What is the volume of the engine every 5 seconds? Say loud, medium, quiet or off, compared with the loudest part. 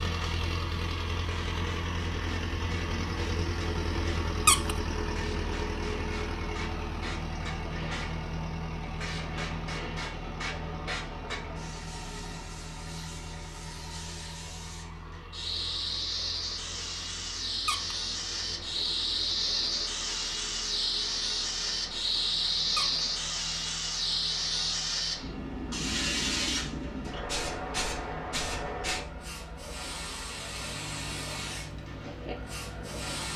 loud, loud, medium, quiet, quiet, quiet, medium.